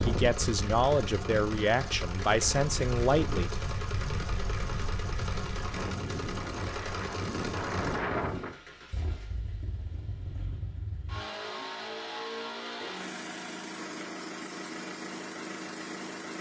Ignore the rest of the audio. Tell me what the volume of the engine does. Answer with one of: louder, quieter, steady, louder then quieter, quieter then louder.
steady.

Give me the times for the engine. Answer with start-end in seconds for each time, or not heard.
0.0-16.3.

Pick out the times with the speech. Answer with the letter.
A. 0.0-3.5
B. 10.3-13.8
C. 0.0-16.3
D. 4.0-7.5
A.